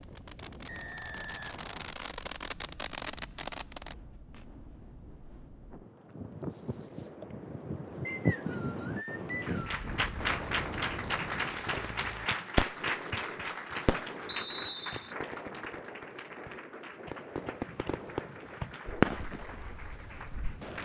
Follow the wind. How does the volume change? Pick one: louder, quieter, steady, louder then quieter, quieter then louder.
louder then quieter.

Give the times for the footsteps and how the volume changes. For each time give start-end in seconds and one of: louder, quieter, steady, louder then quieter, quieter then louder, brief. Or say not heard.
not heard.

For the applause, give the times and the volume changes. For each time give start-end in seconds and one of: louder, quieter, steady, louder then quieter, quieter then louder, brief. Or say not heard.
9.4-20.8 quieter.